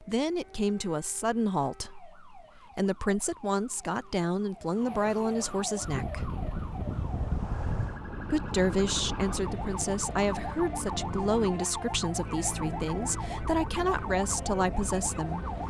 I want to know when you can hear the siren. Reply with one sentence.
You can hear the siren from 0.0 to 15.6 s.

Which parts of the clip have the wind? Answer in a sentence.
The wind can be heard from 5.8 to 15.6 s.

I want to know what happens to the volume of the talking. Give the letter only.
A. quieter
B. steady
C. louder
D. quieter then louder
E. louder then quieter
B.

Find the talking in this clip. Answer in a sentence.
You can hear the talking from 0.0 to 6.3 s and from 8.3 to 15.4 s.